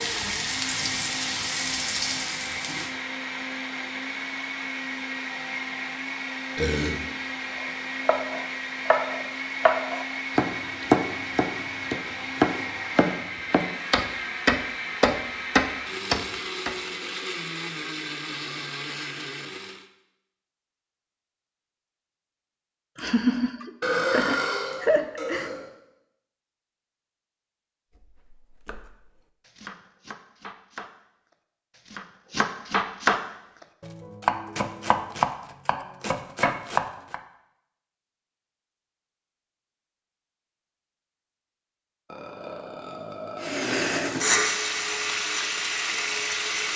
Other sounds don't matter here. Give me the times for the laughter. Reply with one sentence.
You can hear the laughter from 22.9 to 25.5 s.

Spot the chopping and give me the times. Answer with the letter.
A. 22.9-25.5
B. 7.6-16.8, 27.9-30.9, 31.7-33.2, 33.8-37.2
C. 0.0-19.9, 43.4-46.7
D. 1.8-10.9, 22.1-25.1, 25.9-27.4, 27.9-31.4
B.